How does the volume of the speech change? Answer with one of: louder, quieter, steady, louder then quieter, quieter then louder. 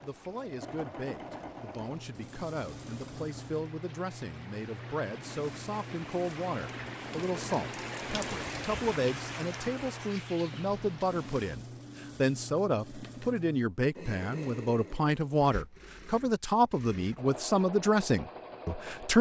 louder.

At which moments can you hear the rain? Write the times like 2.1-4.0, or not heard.
0.0-11.6.